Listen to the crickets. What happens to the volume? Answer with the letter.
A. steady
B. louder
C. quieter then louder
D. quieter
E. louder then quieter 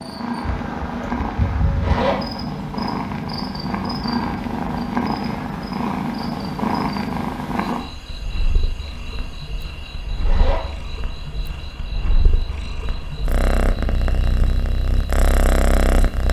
D.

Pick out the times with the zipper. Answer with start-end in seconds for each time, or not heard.
1.7-2.1, 10.2-10.6.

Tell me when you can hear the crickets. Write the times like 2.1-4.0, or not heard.
0.0-16.2.